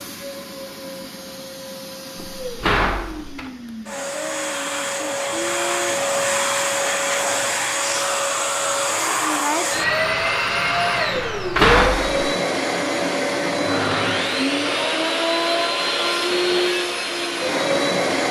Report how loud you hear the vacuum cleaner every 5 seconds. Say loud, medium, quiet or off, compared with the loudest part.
medium, loud, loud, loud.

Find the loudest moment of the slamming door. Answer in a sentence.
The volume of the slamming door peaks at 12 seconds.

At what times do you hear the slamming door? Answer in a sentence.
The slamming door can be heard from 2.1 to 3.5 s and from 11.2 to 12.2 s.